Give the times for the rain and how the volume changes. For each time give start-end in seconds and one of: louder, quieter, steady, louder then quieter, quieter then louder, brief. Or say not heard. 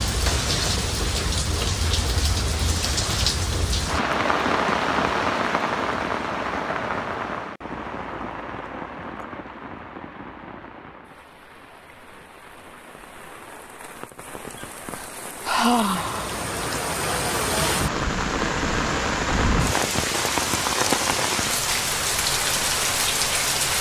0.0-23.7 quieter then louder.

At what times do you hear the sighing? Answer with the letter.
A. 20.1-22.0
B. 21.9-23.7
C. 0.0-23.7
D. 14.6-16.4
D.